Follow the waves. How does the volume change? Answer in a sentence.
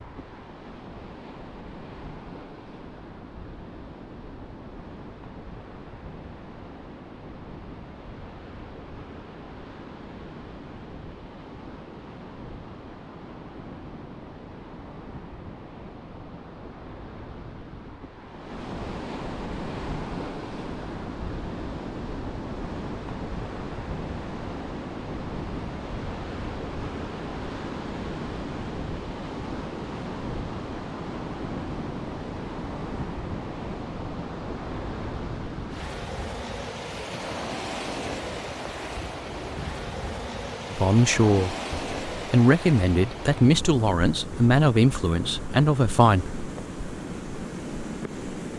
The loudness of the waves goes up.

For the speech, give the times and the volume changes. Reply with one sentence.
The speech can be heard from 40.7 to 46.3 s, at a steady volume.